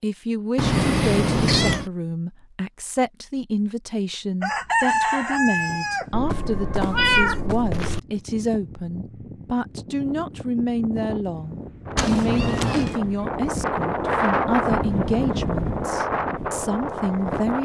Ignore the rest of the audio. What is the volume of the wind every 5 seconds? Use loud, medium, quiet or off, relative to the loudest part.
off, quiet, loud, loud.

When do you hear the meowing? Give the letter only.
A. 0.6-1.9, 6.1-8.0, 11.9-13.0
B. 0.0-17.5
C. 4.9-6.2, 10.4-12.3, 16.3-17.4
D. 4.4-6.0
A.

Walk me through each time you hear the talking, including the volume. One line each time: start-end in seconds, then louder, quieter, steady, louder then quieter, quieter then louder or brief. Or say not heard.
0.0-17.5 steady.